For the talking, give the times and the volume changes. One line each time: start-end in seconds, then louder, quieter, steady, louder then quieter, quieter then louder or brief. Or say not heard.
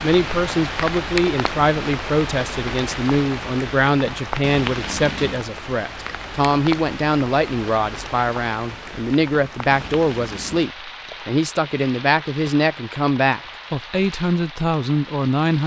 0.0-15.6 steady.